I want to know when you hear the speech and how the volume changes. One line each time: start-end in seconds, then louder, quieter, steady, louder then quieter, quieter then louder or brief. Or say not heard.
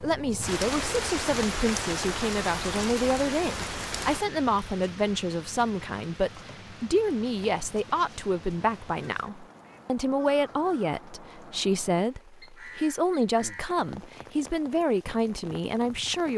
0.0-16.3 steady.